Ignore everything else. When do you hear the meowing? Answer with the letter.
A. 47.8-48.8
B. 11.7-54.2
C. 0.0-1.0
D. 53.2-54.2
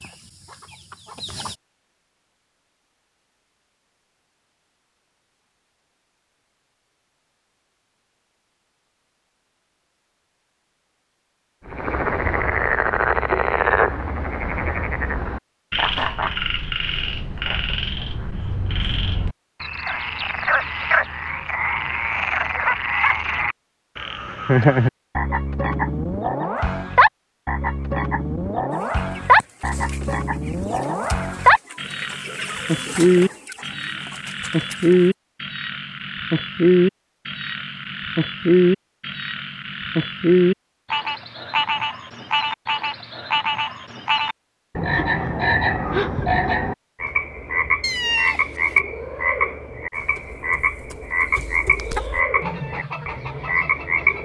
A.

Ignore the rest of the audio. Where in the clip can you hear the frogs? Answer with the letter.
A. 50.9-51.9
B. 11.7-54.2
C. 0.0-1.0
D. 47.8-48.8
B.